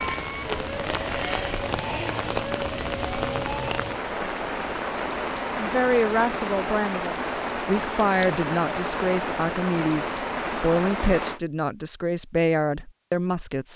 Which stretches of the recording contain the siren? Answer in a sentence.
The siren can be heard from 0.0 to 4.0 s.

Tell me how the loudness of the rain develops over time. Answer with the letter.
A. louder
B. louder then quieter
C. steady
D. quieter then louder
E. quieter
C.